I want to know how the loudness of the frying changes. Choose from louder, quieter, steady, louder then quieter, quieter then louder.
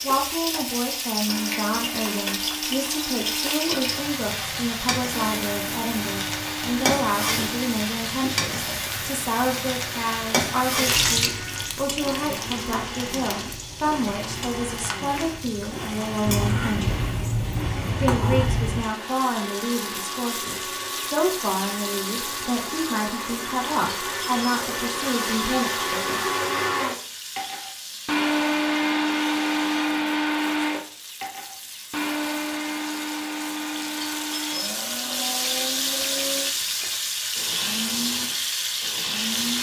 quieter then louder.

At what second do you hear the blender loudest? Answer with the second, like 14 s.
29 s.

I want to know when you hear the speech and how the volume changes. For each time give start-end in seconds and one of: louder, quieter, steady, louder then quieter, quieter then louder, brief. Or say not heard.
0.0-17.1 steady
17.9-26.2 steady.